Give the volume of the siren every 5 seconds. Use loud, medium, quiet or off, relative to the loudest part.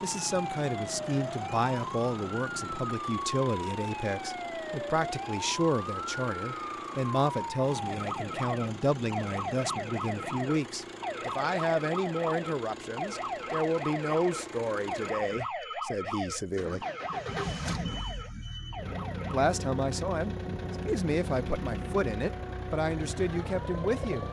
loud, loud, loud, loud, medium.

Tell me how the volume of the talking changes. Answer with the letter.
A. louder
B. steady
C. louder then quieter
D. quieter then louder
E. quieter
B.